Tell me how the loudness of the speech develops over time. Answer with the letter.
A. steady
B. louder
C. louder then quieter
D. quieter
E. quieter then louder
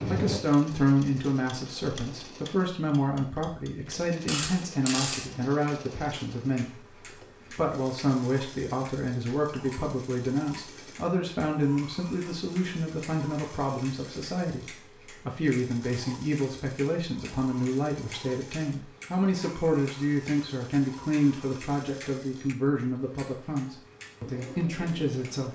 A.